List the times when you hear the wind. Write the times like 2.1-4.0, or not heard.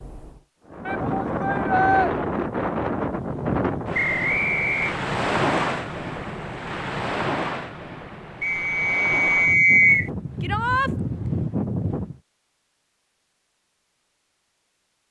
0.0-12.2.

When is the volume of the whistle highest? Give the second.
10 s.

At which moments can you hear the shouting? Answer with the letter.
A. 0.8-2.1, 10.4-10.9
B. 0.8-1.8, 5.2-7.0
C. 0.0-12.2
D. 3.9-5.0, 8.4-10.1
A.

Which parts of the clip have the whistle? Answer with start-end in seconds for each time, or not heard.
3.9-5.0, 8.4-10.1.